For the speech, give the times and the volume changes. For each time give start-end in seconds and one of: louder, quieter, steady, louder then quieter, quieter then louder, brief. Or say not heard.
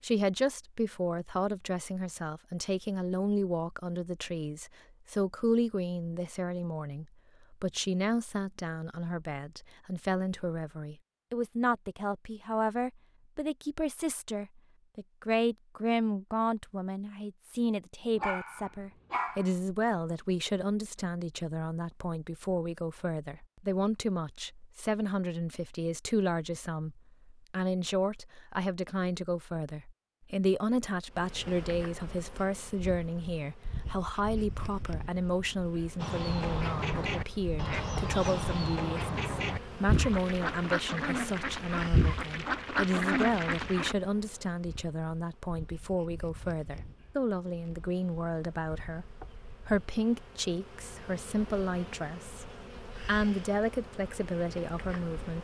0.0-55.3 steady.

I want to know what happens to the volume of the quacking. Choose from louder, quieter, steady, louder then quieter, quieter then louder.
steady.